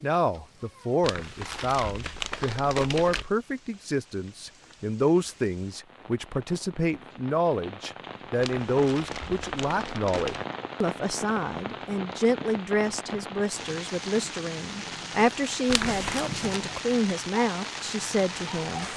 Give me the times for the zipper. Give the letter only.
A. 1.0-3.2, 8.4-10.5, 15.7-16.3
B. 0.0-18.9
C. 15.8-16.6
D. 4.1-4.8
C.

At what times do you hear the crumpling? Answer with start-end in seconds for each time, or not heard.
1.0-3.2, 8.4-10.5, 15.7-16.3.